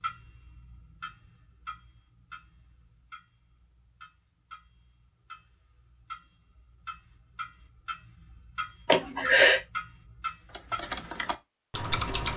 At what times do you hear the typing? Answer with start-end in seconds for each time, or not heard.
10.4-12.3.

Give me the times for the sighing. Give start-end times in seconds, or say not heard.
8.8-9.6.